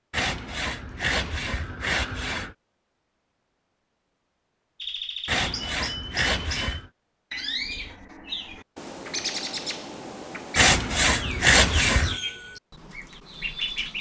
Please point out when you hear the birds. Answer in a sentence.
The birds can be heard from 4.8 to 13.9 s.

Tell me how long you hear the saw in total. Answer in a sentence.
The saw can be heard for 6 seconds in total.